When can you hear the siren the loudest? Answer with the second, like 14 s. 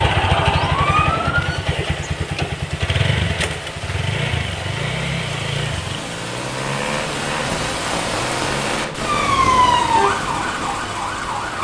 10 s.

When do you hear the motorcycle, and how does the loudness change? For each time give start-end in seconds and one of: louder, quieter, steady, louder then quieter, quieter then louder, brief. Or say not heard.
0.0-11.4 quieter.